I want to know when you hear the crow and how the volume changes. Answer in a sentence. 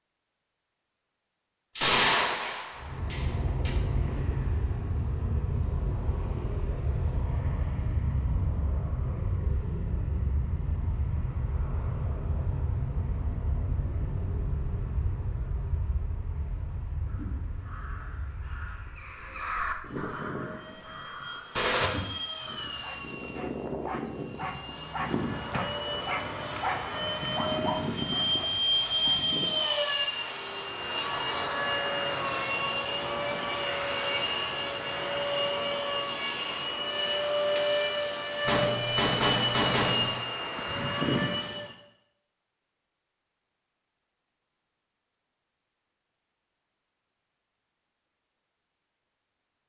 You can hear the crow from 17.1 to 22.9 s, getting louder then quieter.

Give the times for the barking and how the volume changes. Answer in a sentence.
The barking can be heard from 22.6 to 29.8 s, getting louder then quieter.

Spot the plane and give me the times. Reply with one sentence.
You can hear the plane from 2.8 to 41.8 s.